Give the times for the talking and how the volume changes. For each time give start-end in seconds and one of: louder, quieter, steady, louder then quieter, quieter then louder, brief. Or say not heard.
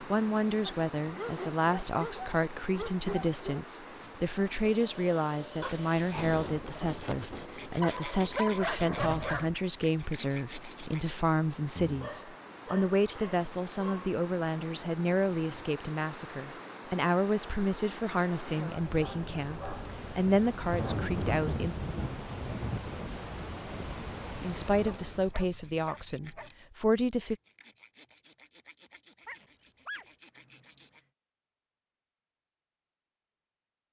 0.0-21.8 steady
24.4-27.4 brief.